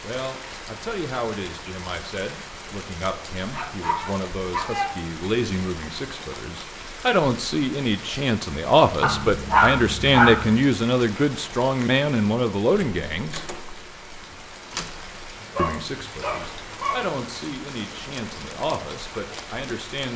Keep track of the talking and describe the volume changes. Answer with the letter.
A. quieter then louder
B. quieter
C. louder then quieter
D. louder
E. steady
C.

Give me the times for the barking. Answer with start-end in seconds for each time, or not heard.
3.5-5.0, 9.0-10.6, 15.4-17.1.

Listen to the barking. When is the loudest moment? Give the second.
10 s.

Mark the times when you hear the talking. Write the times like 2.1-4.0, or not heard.
0.0-13.4, 15.6-20.1.